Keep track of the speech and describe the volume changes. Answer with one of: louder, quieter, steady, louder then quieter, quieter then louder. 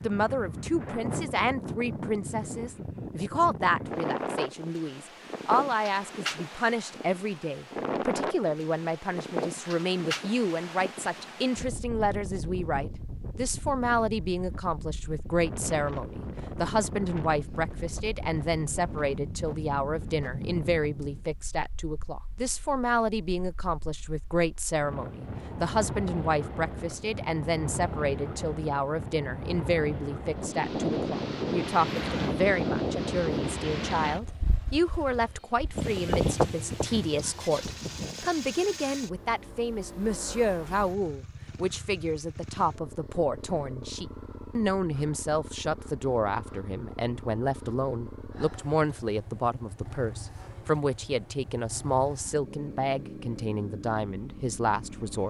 steady.